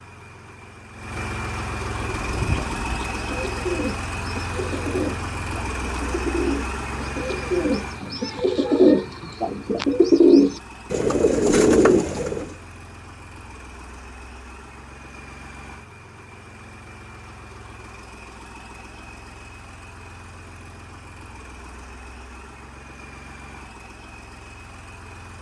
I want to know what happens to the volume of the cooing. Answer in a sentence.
The loudness of the cooing goes up.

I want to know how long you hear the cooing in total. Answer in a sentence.
You can hear the cooing for 11 seconds altogether.